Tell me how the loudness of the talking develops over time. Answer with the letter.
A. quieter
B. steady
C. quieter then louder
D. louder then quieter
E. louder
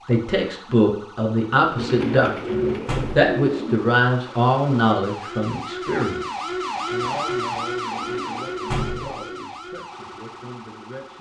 A.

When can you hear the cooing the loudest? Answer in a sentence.
The loudest moment of the cooing is at 3 seconds.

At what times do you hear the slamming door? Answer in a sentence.
The slamming door can be heard from 2.9 to 3.3 s and from 8.7 to 9.2 s.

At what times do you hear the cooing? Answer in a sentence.
You can hear the cooing from 1.8 to 3.8 s and from 7.9 to 9.5 s.